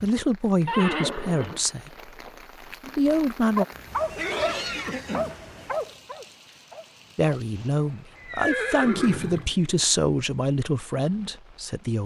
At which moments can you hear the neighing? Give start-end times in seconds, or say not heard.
0.7-2.4, 4.1-5.9, 8.2-9.6.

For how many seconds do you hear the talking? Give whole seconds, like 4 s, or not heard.
8 s.